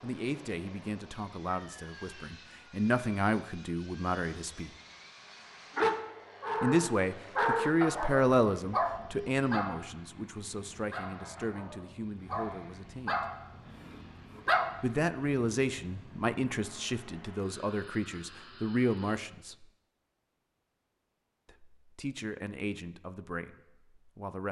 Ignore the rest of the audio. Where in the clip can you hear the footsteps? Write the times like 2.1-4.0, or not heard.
not heard.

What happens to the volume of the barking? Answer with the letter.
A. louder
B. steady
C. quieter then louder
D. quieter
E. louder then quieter
C.